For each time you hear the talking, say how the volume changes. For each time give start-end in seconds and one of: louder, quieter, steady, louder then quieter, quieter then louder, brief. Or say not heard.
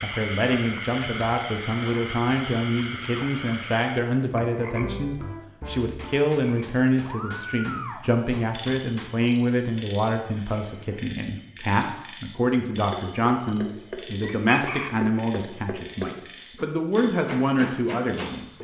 0.0-18.5 steady.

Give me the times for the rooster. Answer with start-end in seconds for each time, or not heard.
14.2-14.9.